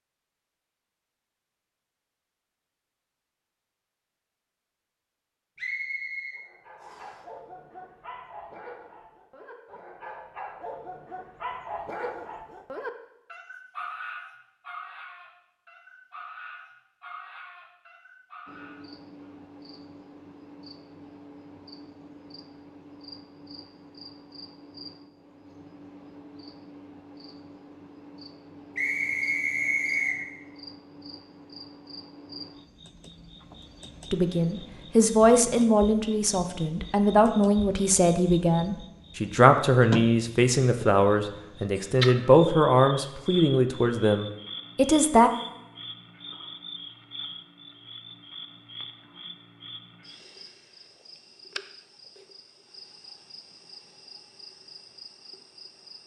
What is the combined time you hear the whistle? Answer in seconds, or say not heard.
3 s.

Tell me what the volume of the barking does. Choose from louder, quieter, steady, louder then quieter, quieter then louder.
louder then quieter.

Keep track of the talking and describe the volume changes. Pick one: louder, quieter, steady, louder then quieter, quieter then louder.
steady.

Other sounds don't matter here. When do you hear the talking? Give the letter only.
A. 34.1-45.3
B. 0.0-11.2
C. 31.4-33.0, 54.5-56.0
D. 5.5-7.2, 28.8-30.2
A.